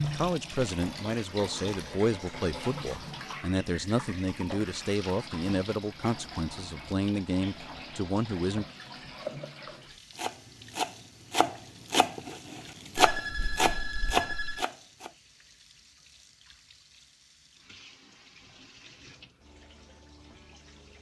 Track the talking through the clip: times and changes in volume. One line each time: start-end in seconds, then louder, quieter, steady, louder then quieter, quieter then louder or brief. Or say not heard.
0.0-8.7 steady.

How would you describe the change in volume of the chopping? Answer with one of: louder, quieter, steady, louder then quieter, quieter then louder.
louder.